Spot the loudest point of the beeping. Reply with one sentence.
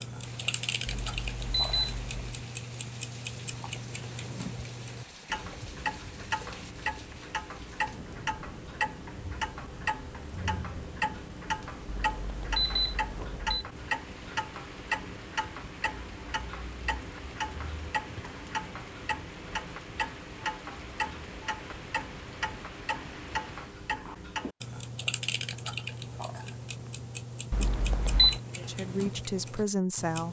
The loudest moment of the beeping is at 28 seconds.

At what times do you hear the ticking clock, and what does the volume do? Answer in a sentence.
You can hear the ticking clock from 0.0 to 30.2 s, at a steady volume.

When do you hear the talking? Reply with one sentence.
The talking can be heard from 28.6 to 30.2 s.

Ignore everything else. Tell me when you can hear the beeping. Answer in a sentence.
You can hear the beeping from 0.8 to 2.4 s, from 11.8 to 13.7 s and from 27.5 to 28.4 s.